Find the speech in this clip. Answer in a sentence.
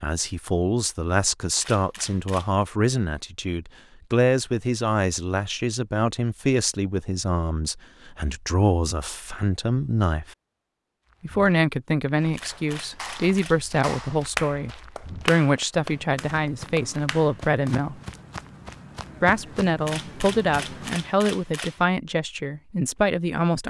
The speech can be heard from 0.0 to 10.2 s, from 11.2 to 17.9 s and from 19.2 to 23.6 s.